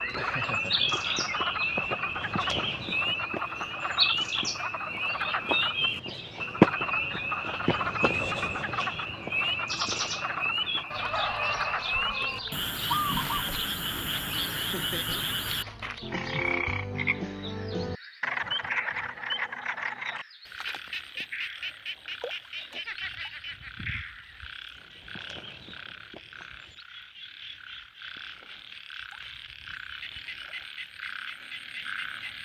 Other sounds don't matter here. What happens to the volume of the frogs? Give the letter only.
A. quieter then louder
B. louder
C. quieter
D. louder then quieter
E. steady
C.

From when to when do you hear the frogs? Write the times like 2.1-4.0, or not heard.
0.0-32.3.